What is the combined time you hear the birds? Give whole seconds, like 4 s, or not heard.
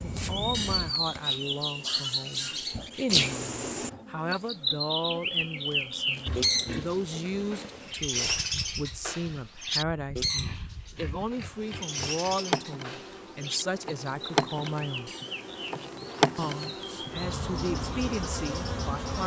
19 s.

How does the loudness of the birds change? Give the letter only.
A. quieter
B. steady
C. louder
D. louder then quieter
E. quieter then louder
A.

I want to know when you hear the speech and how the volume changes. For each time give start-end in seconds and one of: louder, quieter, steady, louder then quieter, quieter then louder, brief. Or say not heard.
0.0-15.1 steady
16.4-19.2 brief.